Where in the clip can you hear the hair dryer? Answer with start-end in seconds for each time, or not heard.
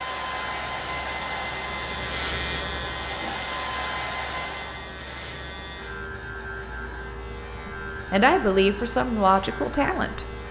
0.0-4.9.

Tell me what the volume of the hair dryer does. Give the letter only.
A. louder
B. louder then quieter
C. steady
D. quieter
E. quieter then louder
E.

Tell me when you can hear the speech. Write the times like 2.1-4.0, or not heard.
7.7-10.2.